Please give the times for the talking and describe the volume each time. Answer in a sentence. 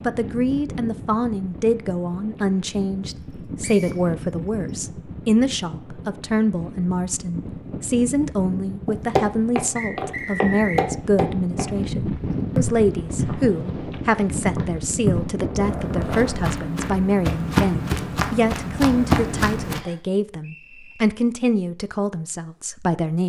The talking can be heard from 0.0 to 23.2 s, at a steady volume.